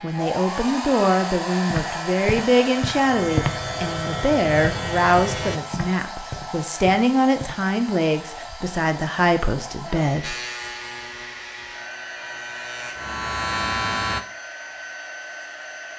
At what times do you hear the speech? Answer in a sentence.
The speech can be heard from 0.0 to 10.3 s.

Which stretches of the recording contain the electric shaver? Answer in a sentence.
The electric shaver can be heard from 0.0 to 5.6 s and from 10.2 to 14.2 s.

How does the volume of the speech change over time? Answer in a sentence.
The loudness of the speech stays about the same.